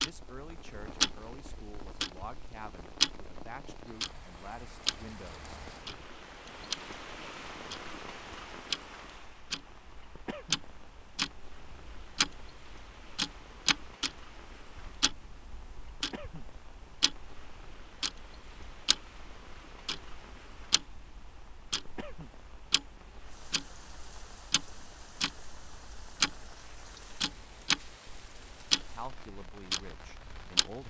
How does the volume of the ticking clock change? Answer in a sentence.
The loudness of the ticking clock goes down, then up.